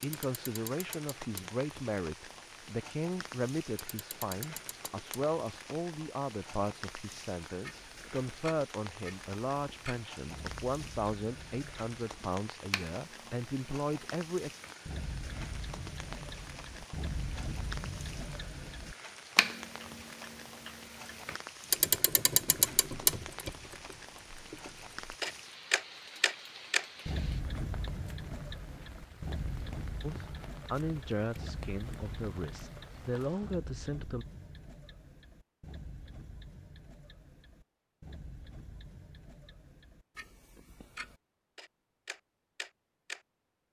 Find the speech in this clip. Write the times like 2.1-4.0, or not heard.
0.0-14.5, 30.0-34.2.